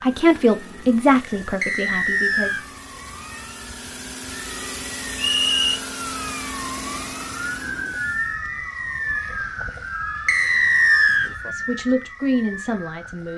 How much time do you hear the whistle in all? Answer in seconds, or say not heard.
3 s.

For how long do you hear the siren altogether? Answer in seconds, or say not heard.
13 s.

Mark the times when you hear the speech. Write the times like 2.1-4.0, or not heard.
0.0-2.8, 11.4-13.3.